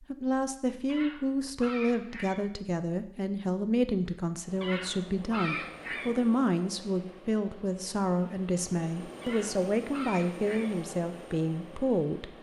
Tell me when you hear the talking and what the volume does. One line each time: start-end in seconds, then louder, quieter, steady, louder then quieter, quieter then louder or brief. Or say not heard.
0.0-12.3 steady.